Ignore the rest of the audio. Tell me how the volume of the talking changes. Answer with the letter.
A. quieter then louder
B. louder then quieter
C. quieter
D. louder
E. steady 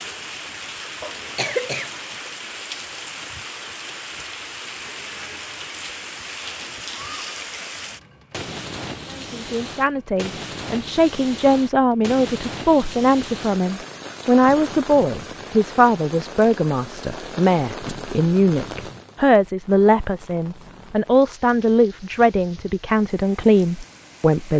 E.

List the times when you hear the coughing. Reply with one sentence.
The coughing can be heard from 1.0 to 2.0 s.